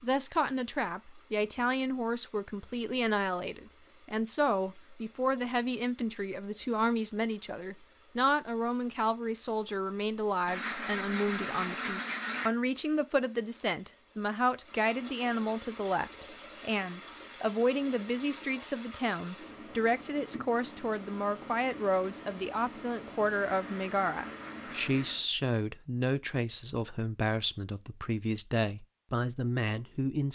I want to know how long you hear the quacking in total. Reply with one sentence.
The quacking can be heard for 4 seconds in total.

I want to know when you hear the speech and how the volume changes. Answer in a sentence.
The speech can be heard from 0.0 to 30.3 s, at a steady volume.